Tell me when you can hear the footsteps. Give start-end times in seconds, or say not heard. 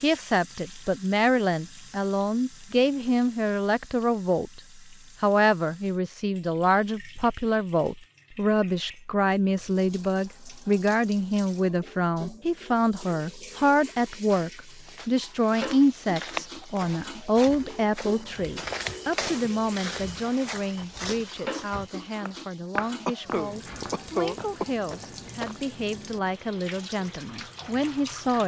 14.7-25.6.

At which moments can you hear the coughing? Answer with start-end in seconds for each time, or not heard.
23.1-24.7.